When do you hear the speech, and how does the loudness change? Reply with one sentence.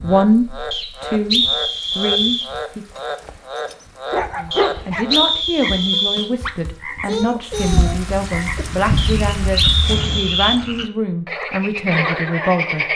You can hear the speech briefly from 0.0 to 2.9 s; and from 4.3 to 12.9 s, at a steady volume.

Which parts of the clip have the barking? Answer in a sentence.
You can hear the barking from 3.0 to 5.2 s.